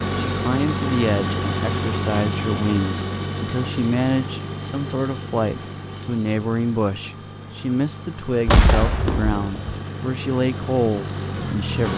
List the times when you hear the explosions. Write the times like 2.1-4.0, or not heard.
8.4-9.6.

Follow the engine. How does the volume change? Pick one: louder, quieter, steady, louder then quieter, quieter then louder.
quieter then louder.